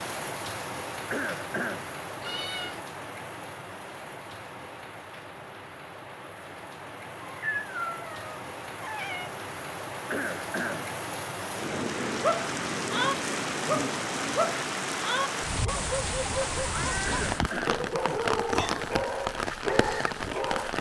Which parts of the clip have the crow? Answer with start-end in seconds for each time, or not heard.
not heard.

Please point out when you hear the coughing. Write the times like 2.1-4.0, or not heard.
1.1-1.9, 10.1-10.9, 17.1-17.8.